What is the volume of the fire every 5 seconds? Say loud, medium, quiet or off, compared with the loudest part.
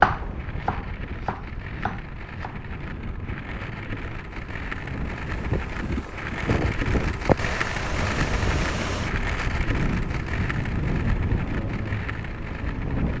medium, loud, medium.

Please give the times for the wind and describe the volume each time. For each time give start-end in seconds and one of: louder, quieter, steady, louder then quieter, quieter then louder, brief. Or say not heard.
0.0-13.1 louder.